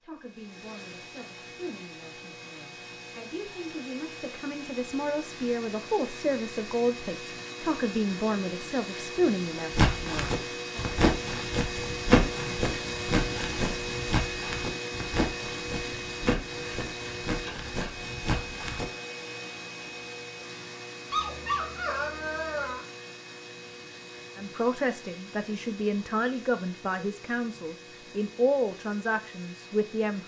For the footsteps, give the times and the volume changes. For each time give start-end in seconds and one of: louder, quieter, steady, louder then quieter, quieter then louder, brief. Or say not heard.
9.7-18.9 quieter.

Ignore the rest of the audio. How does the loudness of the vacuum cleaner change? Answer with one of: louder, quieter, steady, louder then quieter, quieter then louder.
louder then quieter.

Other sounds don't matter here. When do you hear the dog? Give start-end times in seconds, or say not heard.
21.1-22.9.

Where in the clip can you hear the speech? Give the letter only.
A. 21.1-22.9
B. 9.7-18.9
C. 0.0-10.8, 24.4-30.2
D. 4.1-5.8
C.